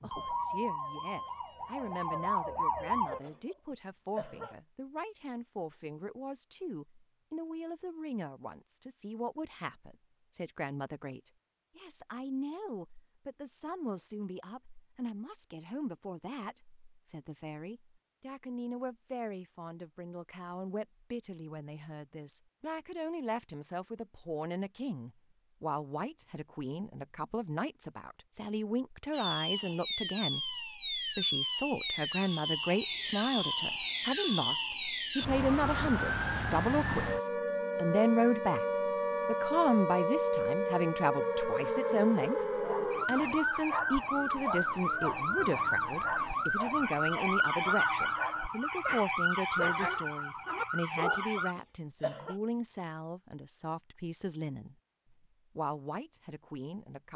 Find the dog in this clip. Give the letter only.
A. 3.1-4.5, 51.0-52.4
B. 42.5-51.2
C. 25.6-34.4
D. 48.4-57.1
B.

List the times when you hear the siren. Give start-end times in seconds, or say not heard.
0.0-3.2, 29.1-51.5.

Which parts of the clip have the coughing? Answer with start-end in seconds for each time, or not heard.
3.1-4.5, 51.0-52.4.